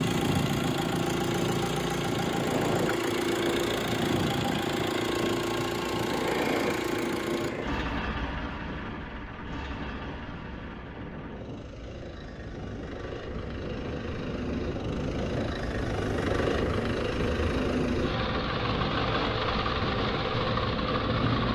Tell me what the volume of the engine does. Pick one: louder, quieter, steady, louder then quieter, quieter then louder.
quieter then louder.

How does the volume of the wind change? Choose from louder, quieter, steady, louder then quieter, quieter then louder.
quieter then louder.